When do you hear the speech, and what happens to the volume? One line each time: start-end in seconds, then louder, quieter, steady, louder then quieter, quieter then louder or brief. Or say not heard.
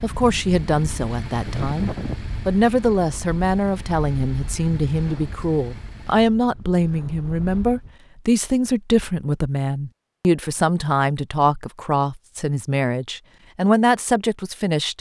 0.0-14.9 steady.